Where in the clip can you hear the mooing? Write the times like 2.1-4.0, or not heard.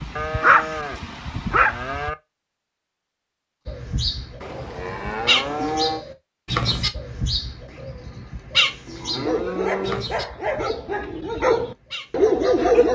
0.1-2.1, 4.4-6.0, 8.8-10.1.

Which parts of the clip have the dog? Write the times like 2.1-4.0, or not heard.
0.0-2.1, 9.2-12.9.